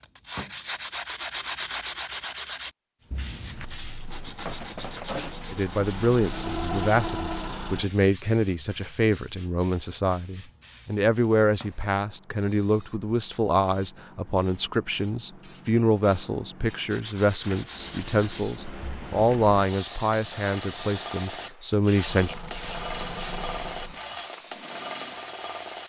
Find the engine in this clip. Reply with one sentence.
The engine can be heard from 3.5 to 7.9 s and from 22.0 to 24.2 s.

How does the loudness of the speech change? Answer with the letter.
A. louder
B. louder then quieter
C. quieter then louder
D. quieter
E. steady
E.